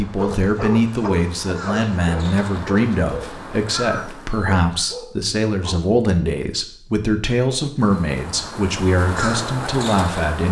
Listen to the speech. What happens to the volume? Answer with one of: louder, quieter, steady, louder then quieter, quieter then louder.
steady.